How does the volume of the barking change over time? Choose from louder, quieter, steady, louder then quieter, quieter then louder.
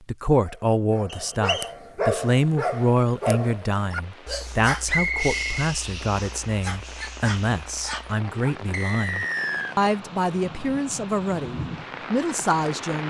quieter.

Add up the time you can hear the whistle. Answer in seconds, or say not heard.
3 s.